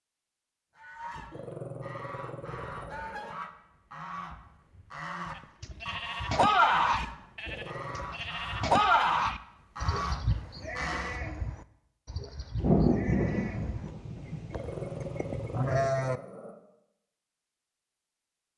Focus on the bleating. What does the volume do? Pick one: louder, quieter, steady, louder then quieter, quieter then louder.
quieter then louder.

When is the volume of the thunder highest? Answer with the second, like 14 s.
13 s.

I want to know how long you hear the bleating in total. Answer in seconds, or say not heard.
11 s.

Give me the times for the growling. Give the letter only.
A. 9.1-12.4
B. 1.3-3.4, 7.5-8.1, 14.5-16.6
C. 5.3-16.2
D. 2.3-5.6
B.